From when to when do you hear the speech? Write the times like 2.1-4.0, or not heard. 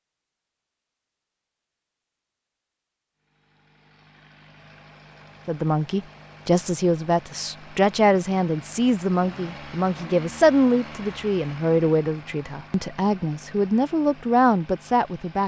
5.5-15.4.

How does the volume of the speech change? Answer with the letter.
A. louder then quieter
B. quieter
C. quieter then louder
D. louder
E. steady
E.